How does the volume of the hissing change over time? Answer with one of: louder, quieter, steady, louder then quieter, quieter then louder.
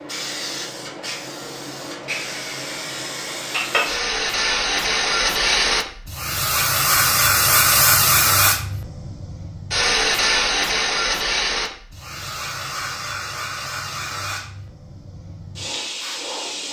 louder then quieter.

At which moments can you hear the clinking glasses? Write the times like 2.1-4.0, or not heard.
3.5-4.0.